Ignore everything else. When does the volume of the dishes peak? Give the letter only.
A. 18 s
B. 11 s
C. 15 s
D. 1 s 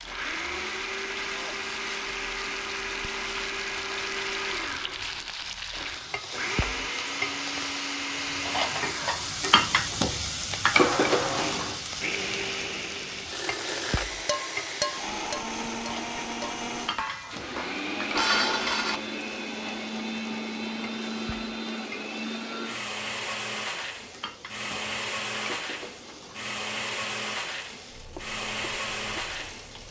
A.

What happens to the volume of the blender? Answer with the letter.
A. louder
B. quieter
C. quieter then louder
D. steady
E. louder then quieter
D.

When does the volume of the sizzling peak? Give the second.
11 s.